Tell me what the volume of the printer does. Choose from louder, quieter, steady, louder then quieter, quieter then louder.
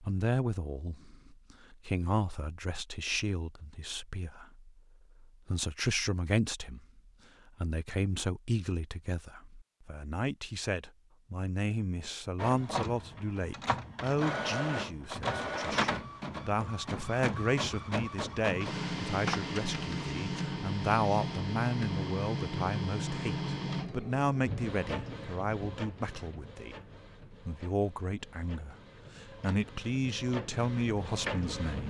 quieter.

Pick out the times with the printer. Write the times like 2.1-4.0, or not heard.
12.3-31.8.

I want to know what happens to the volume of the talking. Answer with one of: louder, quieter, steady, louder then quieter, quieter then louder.
steady.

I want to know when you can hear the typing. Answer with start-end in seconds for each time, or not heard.
not heard.